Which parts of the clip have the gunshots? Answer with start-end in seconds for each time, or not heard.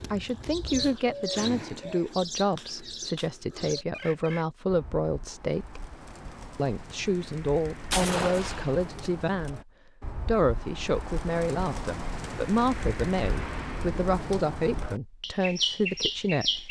7.9-9.5.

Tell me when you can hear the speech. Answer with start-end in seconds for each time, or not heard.
0.1-5.8, 6.5-9.6, 10.2-16.6.